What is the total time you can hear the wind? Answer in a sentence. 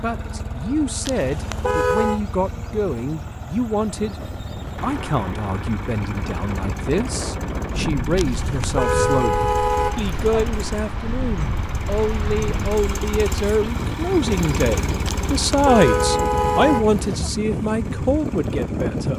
You can hear the wind for 15 seconds altogether.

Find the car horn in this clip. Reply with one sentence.
The car horn can be heard from 1.1 to 2.2 s, from 8.2 to 10.4 s and from 15.1 to 17.3 s.